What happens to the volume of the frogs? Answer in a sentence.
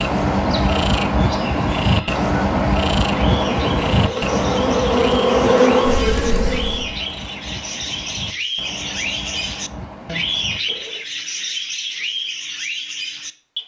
The loudness of the frogs goes down.